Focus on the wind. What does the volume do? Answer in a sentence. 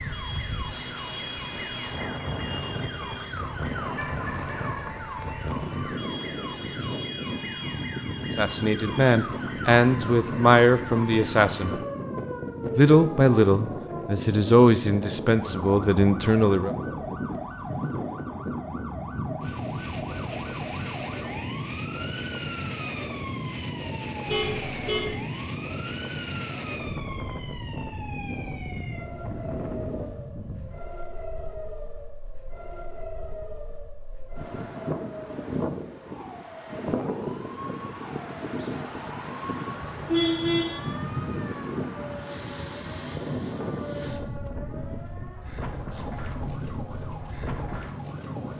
The volume of the wind stays about the same.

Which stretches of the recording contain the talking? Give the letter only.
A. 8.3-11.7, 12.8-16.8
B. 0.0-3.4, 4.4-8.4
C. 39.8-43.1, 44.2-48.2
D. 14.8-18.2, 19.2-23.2
A.